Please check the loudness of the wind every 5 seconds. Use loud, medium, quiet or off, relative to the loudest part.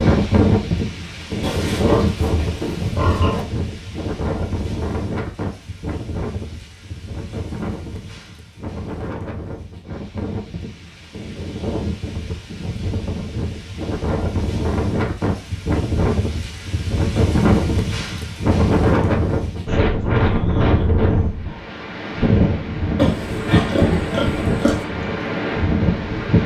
loud, medium, medium, loud, loud, loud.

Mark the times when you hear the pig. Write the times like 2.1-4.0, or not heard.
1.4-3.5, 22.9-24.9.